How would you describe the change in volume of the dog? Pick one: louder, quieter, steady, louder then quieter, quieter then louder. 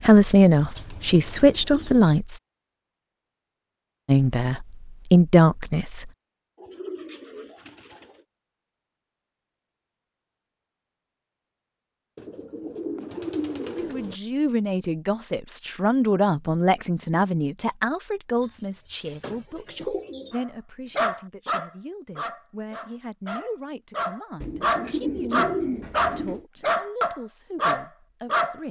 quieter then louder.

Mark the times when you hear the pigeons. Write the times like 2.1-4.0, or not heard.
0.5-2.2, 6.5-8.2, 12.2-14.2, 18.4-20.4, 24.4-26.4.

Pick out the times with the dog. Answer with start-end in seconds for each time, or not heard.
20.4-28.6.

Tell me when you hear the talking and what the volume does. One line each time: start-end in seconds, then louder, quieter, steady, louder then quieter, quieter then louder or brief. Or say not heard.
0.0-2.4 brief
4.0-6.1 brief
13.8-28.6 quieter.